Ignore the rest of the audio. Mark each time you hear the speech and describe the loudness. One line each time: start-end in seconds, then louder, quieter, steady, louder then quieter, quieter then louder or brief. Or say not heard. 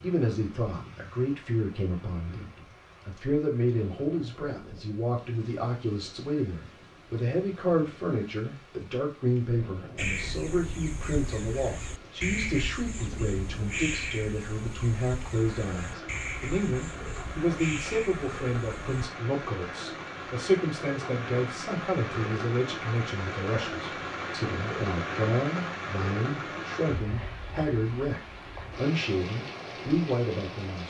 0.0-2.5 brief
3.0-30.8 steady.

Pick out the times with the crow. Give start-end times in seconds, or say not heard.
9.9-19.1.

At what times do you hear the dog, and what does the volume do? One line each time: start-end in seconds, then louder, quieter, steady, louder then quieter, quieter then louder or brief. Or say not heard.
not heard.